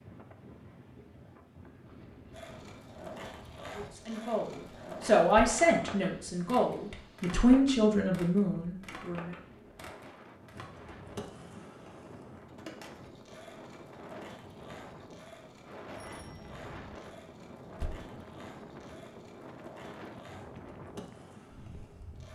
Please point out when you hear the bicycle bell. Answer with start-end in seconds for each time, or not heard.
15.9-16.9.